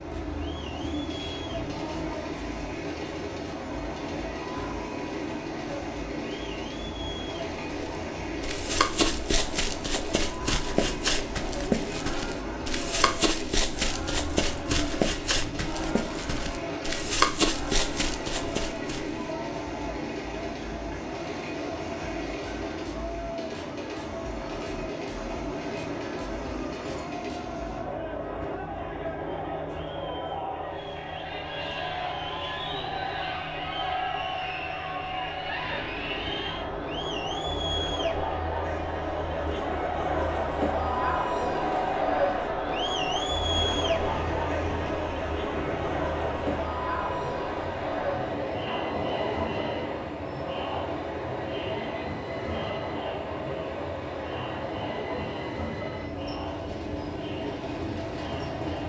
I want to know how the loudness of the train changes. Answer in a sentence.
The loudness of the train stays about the same.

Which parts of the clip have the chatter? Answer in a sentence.
You can hear the chatter from 0.0 to 58.8 s.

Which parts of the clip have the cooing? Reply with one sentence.
You can't hear the cooing here.